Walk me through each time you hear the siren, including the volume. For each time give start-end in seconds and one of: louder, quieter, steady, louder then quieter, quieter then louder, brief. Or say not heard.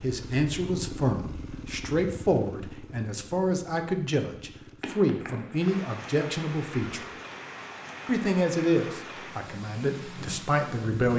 not heard.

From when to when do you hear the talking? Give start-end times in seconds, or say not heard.
0.0-7.0, 8.1-11.1.